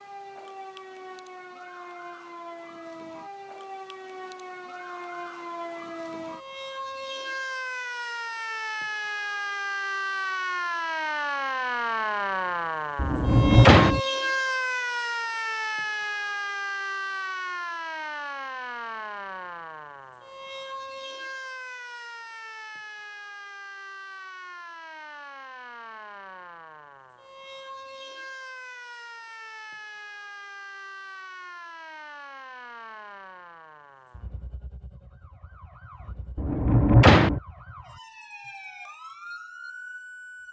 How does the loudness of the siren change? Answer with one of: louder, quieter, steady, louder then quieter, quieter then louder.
louder then quieter.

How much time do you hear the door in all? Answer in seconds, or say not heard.
2 s.